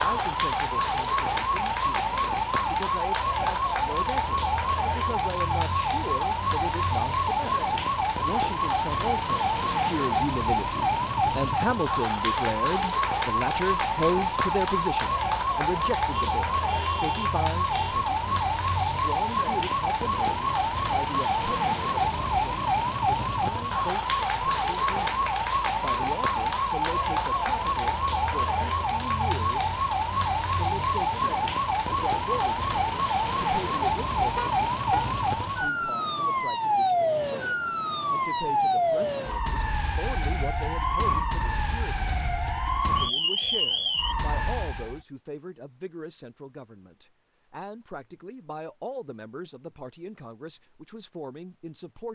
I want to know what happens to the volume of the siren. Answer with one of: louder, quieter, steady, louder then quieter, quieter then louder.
steady.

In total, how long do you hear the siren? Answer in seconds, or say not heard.
45 s.